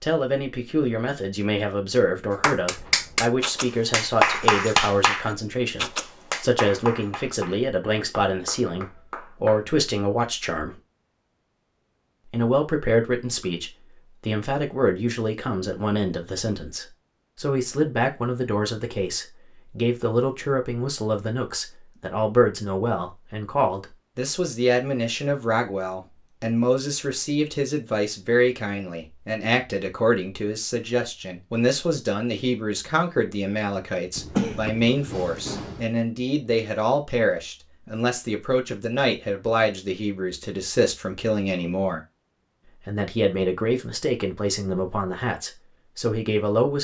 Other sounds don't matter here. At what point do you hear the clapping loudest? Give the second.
4 s.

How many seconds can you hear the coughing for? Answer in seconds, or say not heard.
2 s.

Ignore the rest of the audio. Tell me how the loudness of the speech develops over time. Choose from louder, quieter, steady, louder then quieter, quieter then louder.
steady.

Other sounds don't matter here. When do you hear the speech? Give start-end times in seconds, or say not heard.
0.0-10.8, 12.3-42.0, 42.9-46.7.